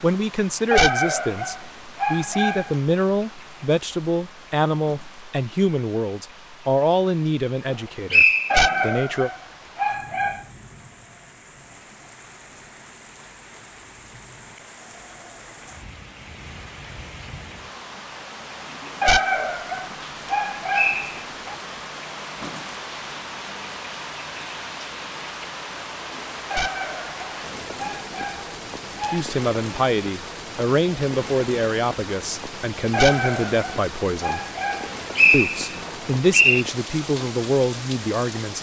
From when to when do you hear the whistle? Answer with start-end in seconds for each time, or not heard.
8.1-8.8, 20.7-21.1, 35.1-36.6.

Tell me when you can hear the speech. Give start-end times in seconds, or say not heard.
0.0-9.3, 29.1-34.4, 35.3-38.5.